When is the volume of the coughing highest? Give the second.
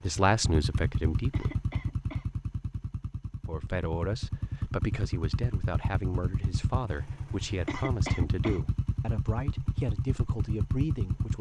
8 s.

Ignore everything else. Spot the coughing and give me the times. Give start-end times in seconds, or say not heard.
1.3-2.2, 7.7-8.6.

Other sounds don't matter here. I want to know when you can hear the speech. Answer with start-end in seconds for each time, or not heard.
0.0-1.6, 3.5-11.3.